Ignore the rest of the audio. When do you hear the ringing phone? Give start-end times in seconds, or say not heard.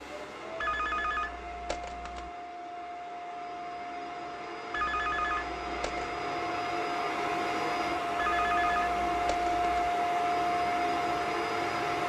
0.6-2.3, 4.7-6.1, 8.2-9.9.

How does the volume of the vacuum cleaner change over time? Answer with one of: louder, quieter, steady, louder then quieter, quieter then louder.
louder.